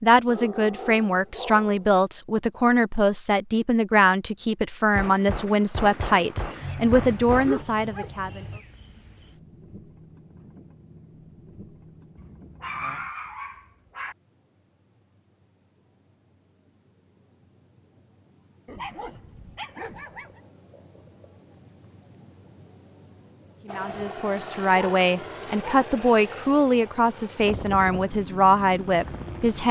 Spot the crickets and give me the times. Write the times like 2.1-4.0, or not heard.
6.3-29.6.